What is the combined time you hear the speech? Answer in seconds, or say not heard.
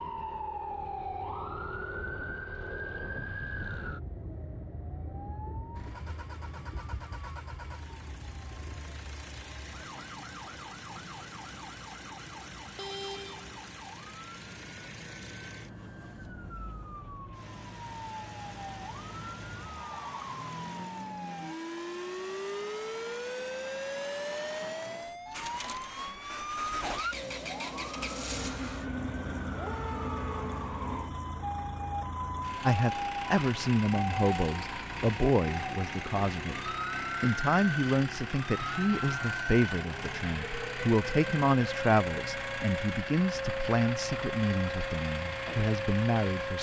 14 s.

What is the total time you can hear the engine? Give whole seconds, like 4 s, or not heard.
41 s.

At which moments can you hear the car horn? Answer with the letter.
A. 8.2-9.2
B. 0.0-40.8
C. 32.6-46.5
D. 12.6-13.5
D.